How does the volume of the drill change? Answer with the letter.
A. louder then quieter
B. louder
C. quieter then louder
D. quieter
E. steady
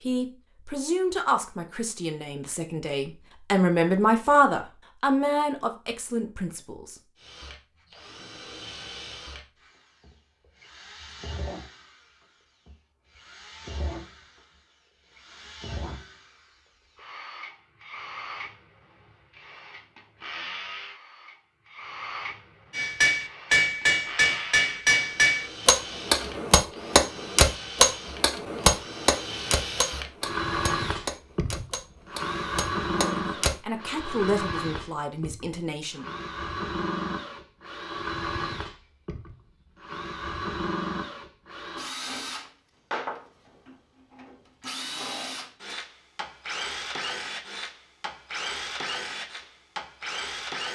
B.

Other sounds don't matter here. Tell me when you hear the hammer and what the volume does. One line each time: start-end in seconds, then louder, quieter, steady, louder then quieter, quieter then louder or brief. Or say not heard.
22.8-33.5 quieter.